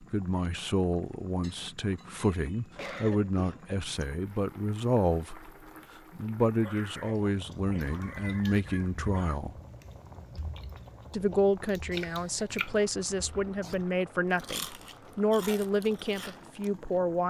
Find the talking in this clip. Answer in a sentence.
The talking can be heard from 0.0 to 5.5 s, from 6.2 to 9.6 s and from 11.1 to 17.2 s.